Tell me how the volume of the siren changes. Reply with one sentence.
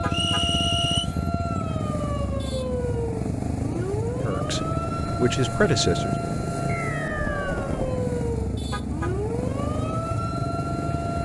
The volume of the siren stays about the same.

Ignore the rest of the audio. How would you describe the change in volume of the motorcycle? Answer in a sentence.
The volume of the motorcycle stays about the same.